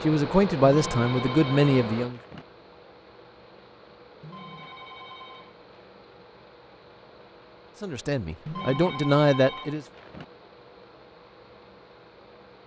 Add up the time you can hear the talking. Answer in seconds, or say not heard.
4 s.